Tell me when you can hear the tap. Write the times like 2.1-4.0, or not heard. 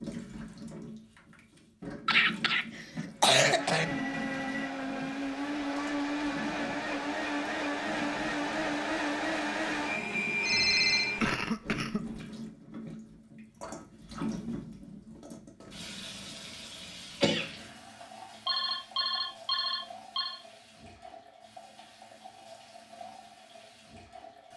0.0-24.5.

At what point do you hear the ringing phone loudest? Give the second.
11 s.